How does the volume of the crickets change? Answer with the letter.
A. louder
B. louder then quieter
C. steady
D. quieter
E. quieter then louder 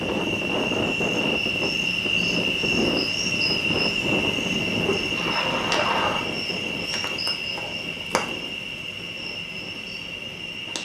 D.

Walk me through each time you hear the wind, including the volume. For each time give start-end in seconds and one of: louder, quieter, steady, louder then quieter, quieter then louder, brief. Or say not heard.
0.0-10.8 quieter.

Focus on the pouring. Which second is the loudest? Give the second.
6 s.